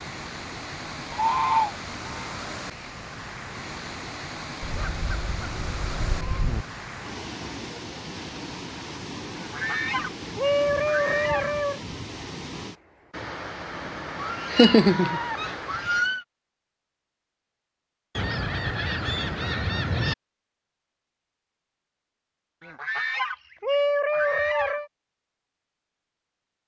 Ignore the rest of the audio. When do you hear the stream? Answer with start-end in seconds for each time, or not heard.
0.0-16.2.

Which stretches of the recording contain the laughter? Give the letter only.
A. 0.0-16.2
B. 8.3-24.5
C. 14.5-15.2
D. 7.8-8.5
C.